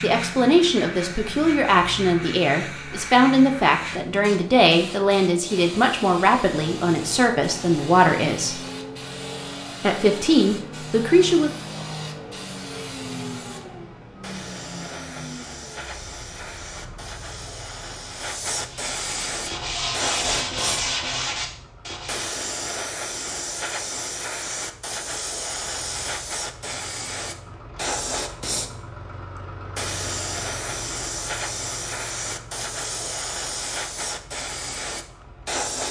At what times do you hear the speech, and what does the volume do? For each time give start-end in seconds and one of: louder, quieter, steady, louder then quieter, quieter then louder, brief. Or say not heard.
0.0-8.6 steady
9.8-11.5 brief.